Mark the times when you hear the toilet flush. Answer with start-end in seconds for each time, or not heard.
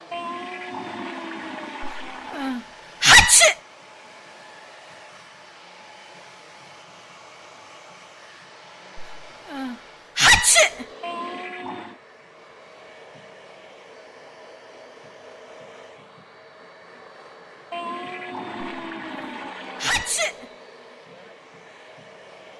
0.1-2.6, 11.0-12.0, 17.7-20.2.